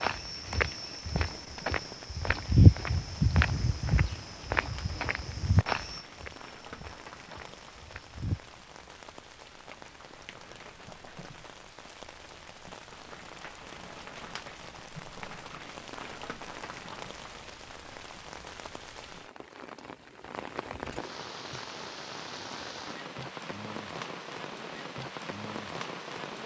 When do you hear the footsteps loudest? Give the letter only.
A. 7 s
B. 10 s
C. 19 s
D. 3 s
D.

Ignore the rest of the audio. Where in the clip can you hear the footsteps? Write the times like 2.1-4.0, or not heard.
0.0-8.6.